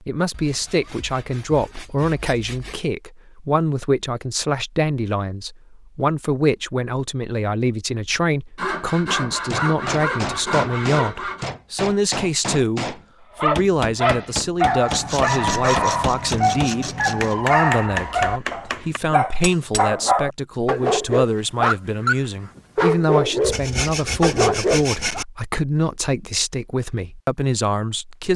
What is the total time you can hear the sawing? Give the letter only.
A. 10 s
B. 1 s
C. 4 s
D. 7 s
A.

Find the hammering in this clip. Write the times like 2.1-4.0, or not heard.
9.5-19.9.